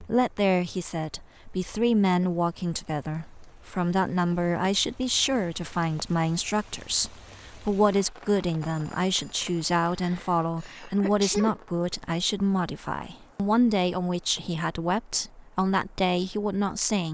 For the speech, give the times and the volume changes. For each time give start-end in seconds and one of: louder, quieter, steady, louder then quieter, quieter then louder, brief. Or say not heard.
0.0-17.1 steady.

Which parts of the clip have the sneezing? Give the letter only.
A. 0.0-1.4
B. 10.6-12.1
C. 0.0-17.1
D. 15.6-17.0
B.